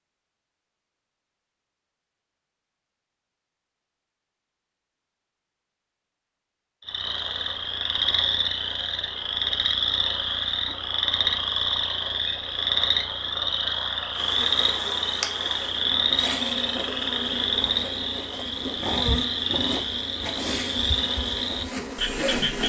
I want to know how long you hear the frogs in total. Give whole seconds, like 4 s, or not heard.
16 s.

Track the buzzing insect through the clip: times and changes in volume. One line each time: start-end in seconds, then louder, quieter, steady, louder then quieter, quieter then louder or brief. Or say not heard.
14.1-22.6 steady.